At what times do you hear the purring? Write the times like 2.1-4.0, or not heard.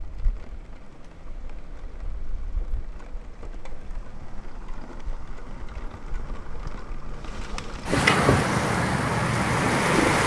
8.4-10.2.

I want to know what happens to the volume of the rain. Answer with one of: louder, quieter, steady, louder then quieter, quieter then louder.
louder.